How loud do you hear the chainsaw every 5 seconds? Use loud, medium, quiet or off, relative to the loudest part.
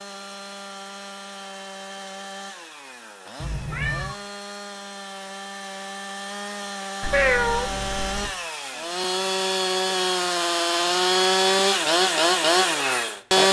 quiet, medium, loud.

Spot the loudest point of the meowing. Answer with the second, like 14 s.
7 s.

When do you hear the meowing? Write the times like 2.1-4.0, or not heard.
3.4-4.2, 7.0-8.3.